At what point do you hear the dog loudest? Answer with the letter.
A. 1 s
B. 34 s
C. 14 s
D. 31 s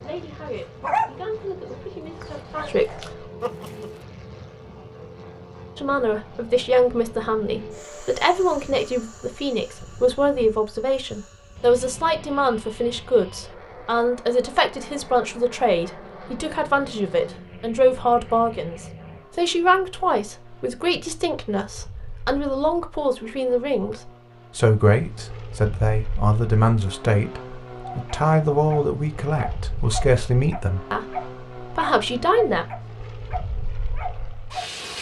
A.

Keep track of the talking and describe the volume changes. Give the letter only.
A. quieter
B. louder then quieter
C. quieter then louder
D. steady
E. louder
D.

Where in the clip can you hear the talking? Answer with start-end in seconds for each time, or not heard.
0.0-3.0, 5.8-32.6.